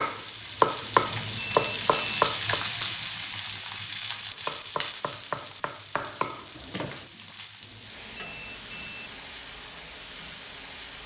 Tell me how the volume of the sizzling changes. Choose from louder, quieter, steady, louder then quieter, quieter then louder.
quieter.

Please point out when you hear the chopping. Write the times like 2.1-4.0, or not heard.
0.0-2.9, 4.3-7.0.